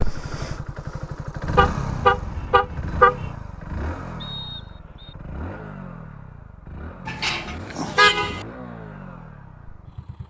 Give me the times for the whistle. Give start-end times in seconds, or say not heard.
4.2-5.2.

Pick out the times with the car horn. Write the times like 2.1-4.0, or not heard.
1.4-3.3, 7.0-8.4.